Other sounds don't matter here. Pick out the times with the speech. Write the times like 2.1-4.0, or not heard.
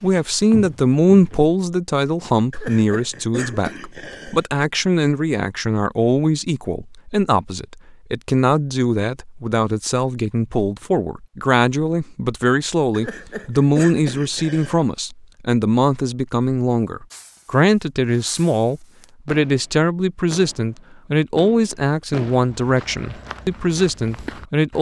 0.0-24.7.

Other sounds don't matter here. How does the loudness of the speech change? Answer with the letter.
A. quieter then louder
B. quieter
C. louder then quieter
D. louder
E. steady
E.